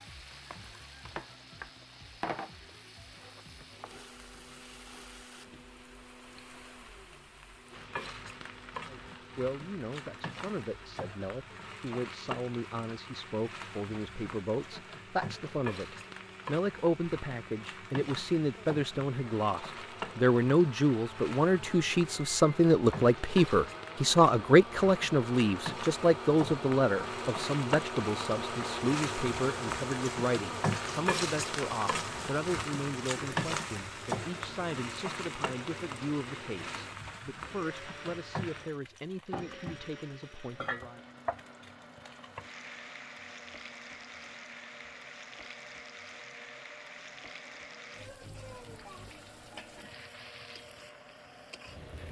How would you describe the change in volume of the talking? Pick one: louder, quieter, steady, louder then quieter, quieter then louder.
louder then quieter.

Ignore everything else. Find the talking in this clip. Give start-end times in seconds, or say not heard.
8.8-41.0.